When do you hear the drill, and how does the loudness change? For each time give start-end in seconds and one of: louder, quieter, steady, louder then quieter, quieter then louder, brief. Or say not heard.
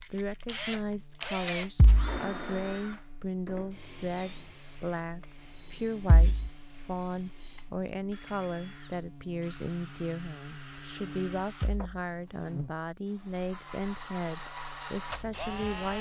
0.0-15.9 quieter then louder.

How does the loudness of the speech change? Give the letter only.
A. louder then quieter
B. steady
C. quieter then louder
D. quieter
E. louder
B.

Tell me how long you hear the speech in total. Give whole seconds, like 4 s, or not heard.
16 s.